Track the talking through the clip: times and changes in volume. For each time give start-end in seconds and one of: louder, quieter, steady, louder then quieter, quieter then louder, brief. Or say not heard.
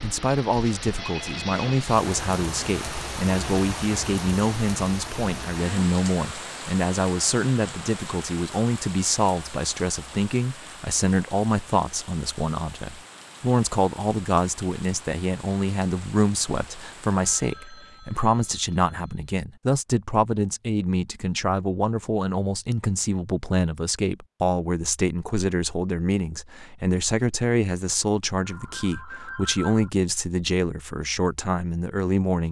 0.0-32.4 steady.